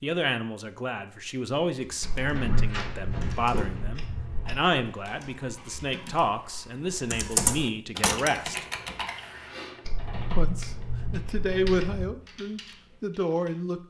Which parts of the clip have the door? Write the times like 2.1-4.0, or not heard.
2.3-3.9.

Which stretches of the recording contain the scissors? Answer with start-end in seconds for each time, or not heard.
2.0-4.6, 9.8-12.1.